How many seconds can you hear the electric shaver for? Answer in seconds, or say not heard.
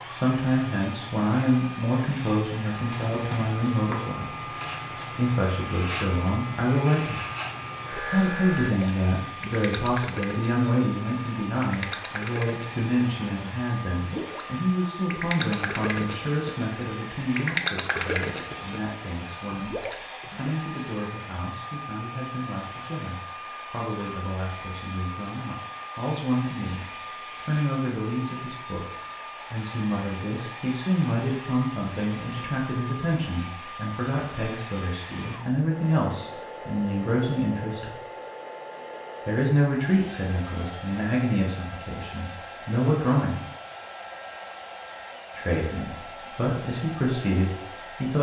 9 s.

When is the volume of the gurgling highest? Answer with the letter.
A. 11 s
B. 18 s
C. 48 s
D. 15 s
B.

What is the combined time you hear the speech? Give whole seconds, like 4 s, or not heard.
44 s.